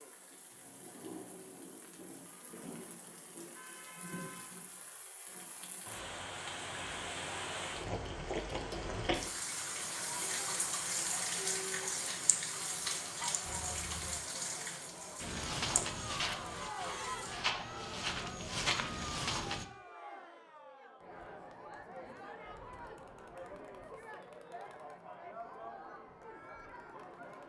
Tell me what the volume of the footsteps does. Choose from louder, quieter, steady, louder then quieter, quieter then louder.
quieter then louder.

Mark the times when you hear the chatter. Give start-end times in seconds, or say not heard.
9.7-27.4.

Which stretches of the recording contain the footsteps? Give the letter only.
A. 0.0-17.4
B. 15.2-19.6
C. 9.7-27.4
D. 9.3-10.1
B.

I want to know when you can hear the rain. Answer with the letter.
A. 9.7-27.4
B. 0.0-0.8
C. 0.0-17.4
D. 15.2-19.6
C.